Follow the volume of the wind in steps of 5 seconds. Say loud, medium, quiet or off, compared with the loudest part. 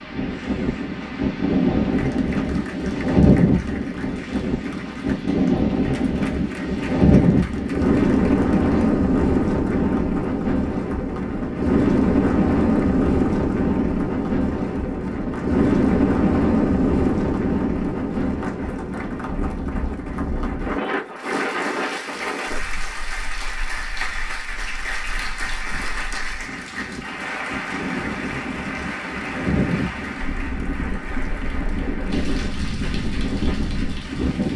loud, loud, loud, loud, medium, medium, medium.